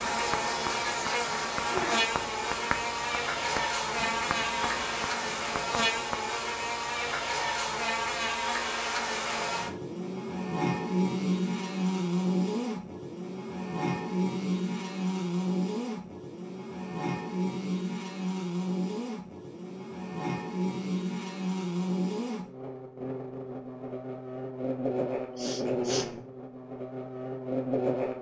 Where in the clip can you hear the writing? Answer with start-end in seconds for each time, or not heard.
0.0-6.2.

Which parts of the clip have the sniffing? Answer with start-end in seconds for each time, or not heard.
25.0-26.1.